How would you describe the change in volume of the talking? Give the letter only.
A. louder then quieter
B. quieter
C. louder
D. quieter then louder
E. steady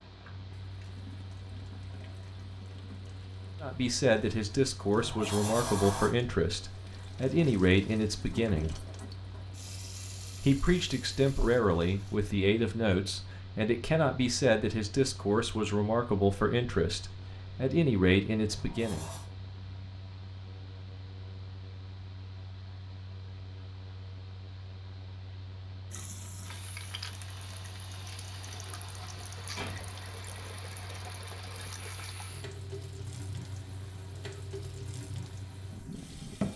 E.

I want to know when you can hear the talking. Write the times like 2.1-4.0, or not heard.
3.6-8.8, 10.4-19.1.